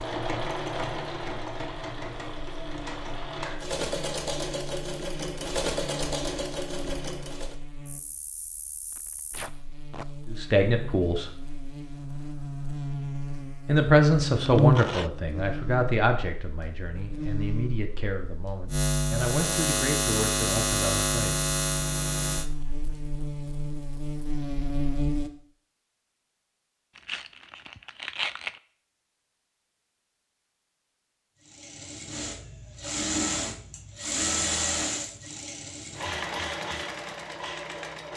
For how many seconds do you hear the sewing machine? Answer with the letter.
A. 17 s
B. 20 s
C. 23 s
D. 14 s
D.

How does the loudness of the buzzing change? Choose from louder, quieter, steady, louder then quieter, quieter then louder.
louder.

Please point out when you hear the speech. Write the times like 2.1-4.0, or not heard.
10.3-11.3, 13.7-21.4.